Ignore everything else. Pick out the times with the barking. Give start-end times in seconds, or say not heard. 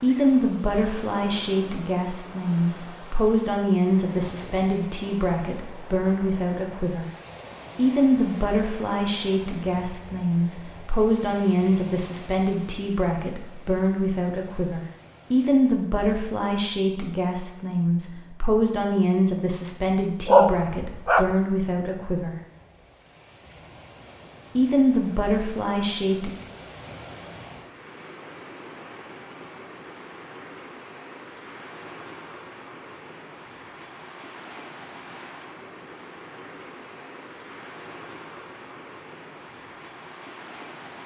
20.2-21.4.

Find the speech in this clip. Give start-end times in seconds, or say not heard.
0.0-7.0, 7.8-22.4, 24.6-26.3.